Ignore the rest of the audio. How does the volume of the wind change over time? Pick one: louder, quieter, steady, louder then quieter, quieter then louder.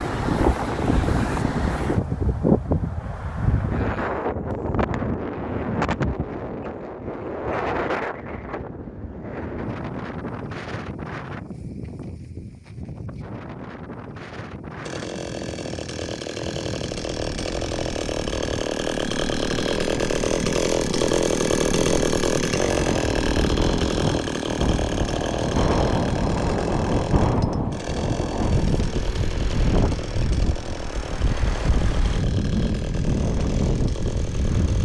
quieter then louder.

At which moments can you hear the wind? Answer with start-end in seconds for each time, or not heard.
0.0-34.7.